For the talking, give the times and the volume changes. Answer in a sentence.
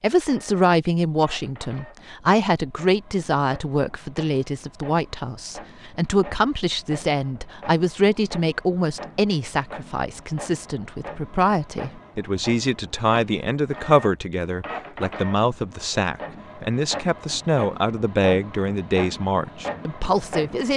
You can hear the talking from 0.0 to 20.7 s, at a steady volume.